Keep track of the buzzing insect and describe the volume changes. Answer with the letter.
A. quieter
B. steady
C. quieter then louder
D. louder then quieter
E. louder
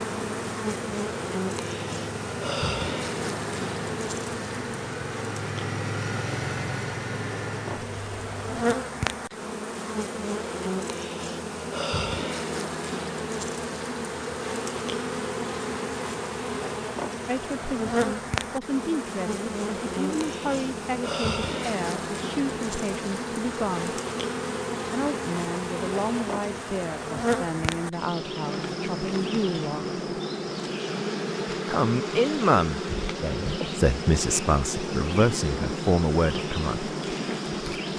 B.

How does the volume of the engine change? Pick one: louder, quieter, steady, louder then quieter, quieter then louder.
louder.